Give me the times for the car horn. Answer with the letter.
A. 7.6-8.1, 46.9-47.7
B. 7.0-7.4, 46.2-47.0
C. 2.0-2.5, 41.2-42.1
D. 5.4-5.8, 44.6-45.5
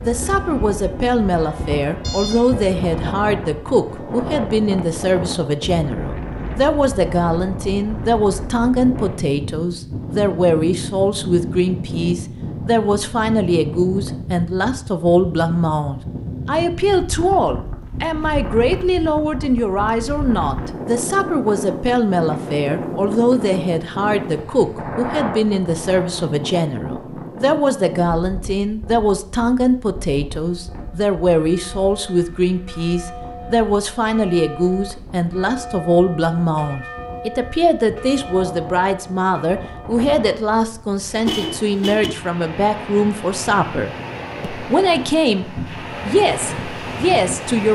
C.